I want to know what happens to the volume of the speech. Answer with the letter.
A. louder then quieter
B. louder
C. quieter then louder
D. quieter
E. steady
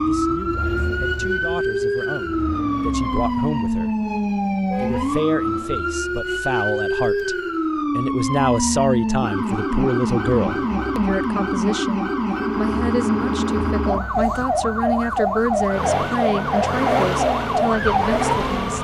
B.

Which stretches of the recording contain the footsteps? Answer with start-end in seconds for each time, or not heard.
not heard.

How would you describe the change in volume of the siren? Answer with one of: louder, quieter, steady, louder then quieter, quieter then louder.
steady.